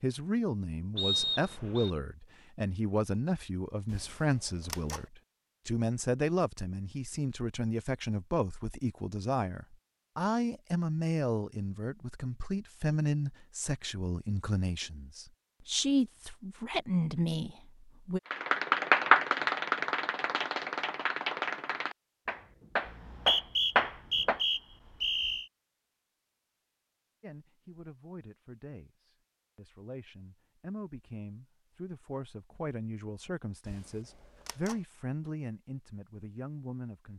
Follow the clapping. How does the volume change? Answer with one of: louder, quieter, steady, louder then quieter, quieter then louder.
quieter then louder.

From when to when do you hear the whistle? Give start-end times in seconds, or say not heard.
0.9-1.9, 22.9-25.4.